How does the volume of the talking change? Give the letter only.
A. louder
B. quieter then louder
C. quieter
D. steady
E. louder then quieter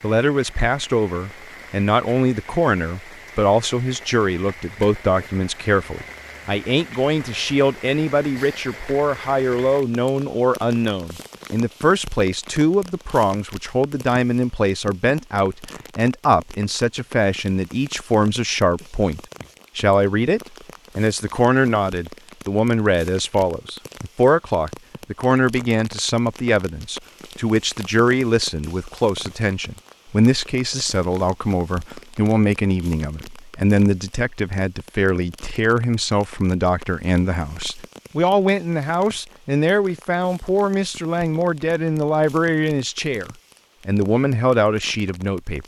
D.